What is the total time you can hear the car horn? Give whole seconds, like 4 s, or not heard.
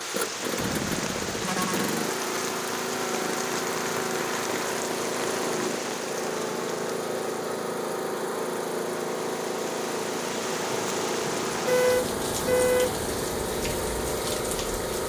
3 s.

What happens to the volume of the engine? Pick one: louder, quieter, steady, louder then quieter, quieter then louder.
steady.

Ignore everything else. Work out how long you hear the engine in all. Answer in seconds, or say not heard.
15 s.